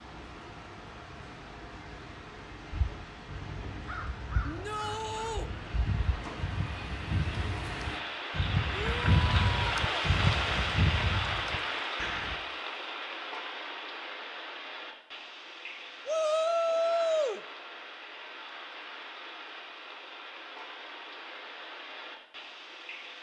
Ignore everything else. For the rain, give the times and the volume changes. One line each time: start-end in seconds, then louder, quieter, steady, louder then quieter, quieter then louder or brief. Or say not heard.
0.0-23.1 louder then quieter.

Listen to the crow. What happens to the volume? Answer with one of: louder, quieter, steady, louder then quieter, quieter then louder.
louder.